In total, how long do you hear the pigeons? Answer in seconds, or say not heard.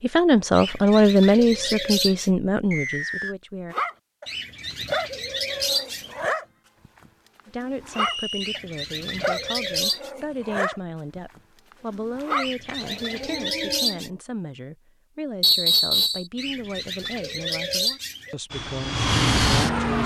9 s.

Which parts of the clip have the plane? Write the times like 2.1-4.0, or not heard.
18.5-20.0.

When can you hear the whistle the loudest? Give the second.
16 s.